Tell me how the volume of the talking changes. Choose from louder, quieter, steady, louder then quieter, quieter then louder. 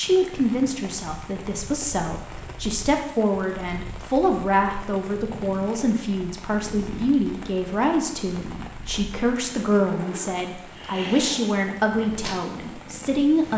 steady.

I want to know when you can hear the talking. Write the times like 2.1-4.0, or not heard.
0.0-13.5.